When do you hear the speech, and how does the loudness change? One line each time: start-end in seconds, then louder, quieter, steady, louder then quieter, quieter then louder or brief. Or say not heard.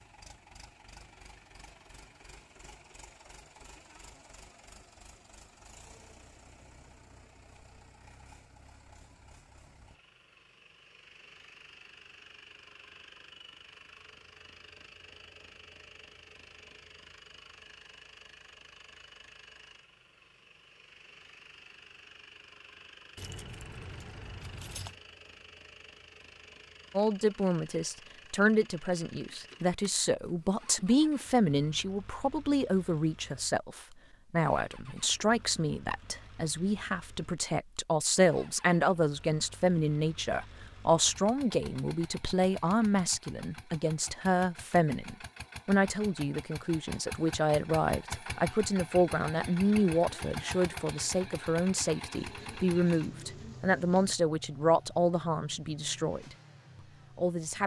26.9-56.4 steady
57.1-57.6 brief.